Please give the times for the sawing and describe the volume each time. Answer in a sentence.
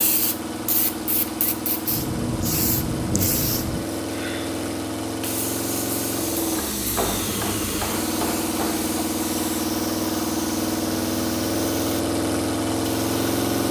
You can't hear the sawing here.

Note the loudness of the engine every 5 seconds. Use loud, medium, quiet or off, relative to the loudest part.
medium, loud, loud.